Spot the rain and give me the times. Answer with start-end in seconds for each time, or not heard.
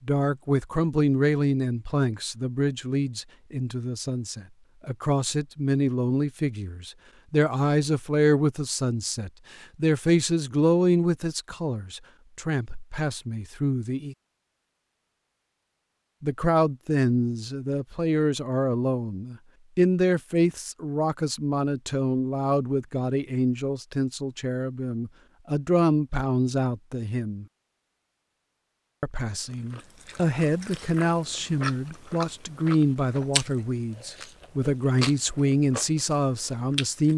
not heard.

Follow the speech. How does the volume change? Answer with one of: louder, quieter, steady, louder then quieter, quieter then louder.
steady.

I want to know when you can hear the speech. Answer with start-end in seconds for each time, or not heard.
0.0-14.2, 16.2-27.4, 29.0-37.1.